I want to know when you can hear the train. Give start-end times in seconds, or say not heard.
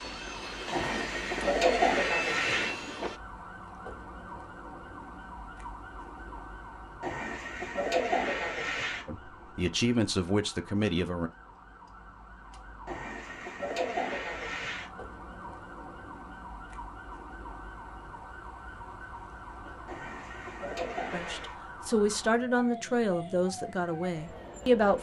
0.0-3.2.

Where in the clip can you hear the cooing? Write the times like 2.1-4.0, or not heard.
0.7-2.8, 7.0-9.1, 12.8-14.9, 19.9-21.6.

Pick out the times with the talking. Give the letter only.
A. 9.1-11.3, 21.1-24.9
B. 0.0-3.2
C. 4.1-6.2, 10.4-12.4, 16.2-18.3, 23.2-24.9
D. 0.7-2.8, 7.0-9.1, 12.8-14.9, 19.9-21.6
A.